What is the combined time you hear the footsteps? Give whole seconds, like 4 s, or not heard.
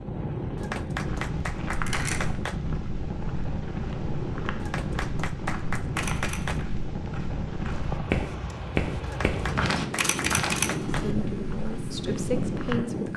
12 s.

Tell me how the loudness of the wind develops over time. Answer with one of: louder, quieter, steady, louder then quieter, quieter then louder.
steady.